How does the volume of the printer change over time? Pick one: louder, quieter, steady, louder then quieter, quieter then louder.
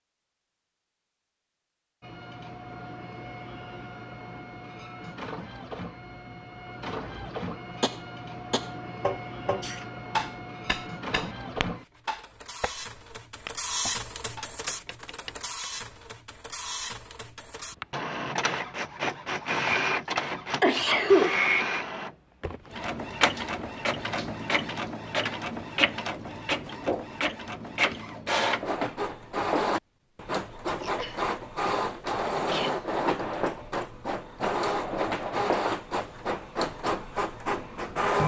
louder.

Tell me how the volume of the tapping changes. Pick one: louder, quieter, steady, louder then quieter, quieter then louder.
quieter.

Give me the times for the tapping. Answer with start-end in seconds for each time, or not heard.
7.8-15.7.